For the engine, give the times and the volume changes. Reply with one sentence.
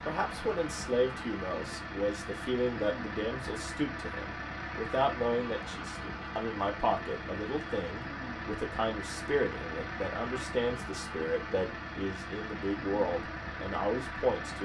The engine can be heard from 0.0 to 14.6 s, at a steady volume.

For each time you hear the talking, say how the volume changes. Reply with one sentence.
The talking can be heard from 0.1 to 14.6 s, at a steady volume.